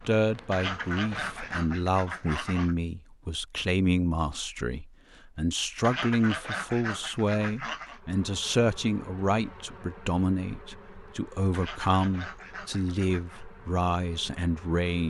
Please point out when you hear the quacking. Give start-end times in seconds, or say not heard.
0.5-2.8, 5.8-8.0, 11.5-13.4.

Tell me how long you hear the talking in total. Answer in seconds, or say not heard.
15 s.